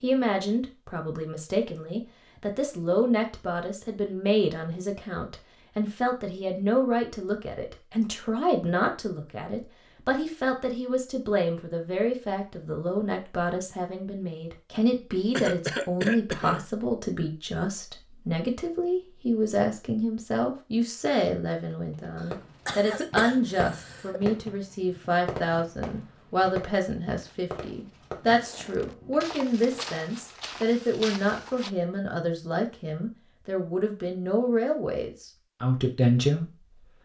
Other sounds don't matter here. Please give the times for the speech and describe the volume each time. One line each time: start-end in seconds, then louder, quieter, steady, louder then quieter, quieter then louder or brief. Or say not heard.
0.0-36.6 steady.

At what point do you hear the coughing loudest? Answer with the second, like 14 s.
16 s.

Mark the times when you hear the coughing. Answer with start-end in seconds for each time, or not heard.
15.3-16.6, 22.1-24.2.